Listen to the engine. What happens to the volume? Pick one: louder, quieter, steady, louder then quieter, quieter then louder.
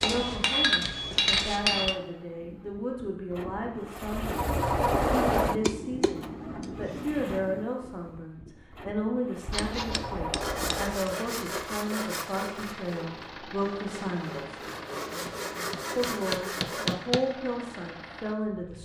quieter.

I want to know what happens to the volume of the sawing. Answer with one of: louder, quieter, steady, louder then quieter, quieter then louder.
quieter then louder.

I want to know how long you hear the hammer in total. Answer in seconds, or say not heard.
8 s.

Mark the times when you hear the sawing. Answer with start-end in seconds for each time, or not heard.
9.5-16.9.